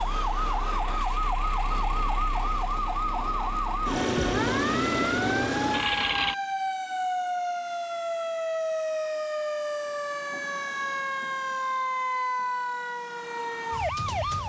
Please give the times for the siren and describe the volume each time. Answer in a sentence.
The siren can be heard from 0.0 to 14.4 s, at a steady volume.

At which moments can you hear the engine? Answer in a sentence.
The engine can be heard from 0.0 to 6.3 s.